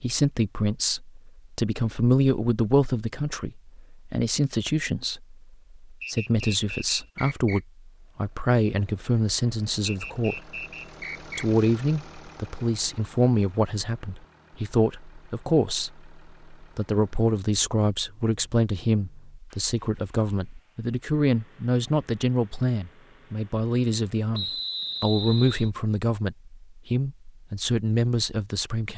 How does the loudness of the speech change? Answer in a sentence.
The volume of the speech stays about the same.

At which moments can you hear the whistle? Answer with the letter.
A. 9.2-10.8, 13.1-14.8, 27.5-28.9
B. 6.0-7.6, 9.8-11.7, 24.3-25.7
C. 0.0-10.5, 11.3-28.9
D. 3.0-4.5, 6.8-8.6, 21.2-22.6
B.